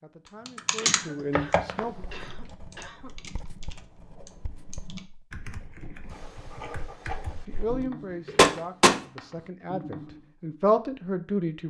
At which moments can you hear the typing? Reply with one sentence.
You can hear the typing from 0.5 to 7.8 s.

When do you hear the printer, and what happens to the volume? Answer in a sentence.
You can't hear the printer here.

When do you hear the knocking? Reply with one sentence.
The knocking can be heard from 1.4 to 1.9 s and from 8.3 to 8.9 s.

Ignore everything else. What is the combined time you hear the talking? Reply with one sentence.
The talking can be heard for 6 seconds in total.